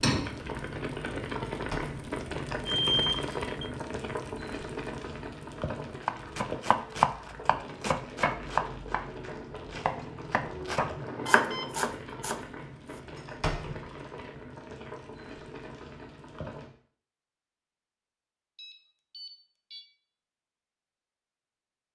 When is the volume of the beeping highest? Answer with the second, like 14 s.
3 s.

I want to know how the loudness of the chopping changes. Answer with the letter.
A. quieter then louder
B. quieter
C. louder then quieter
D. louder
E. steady
A.